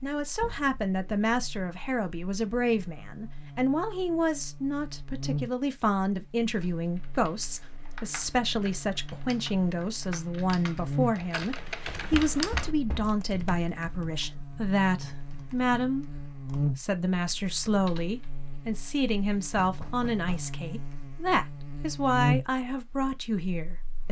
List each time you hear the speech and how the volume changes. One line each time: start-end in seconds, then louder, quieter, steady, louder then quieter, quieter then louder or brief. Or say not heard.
0.0-24.0 steady.